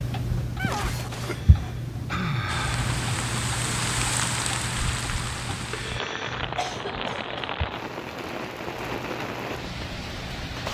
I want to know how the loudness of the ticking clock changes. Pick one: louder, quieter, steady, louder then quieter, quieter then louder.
quieter.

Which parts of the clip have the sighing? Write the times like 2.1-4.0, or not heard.
1.2-2.9, 5.7-6.5.